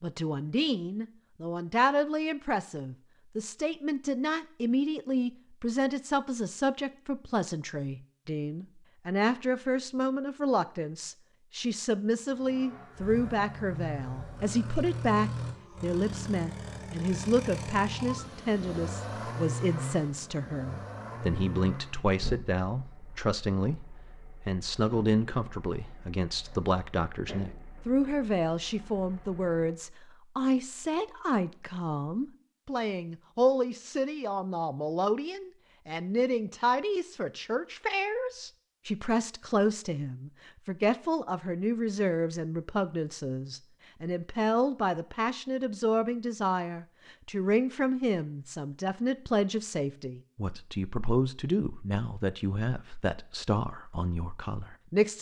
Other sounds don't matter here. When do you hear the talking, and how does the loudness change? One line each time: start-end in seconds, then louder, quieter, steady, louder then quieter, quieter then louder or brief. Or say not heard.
0.0-55.1 steady.